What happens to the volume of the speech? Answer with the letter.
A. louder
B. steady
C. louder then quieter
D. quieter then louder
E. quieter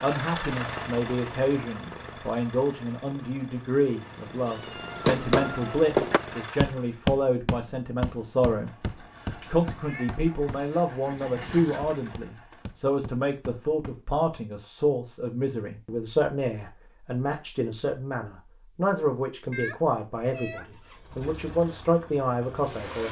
B.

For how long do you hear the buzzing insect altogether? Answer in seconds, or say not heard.
not heard.